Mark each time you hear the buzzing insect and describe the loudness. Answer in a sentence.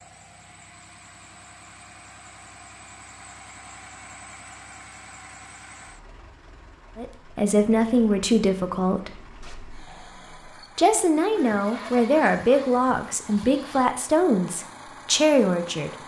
The buzzing insect can't be heard in this clip.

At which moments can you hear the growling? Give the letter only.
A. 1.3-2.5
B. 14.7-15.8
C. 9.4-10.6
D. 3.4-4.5
C.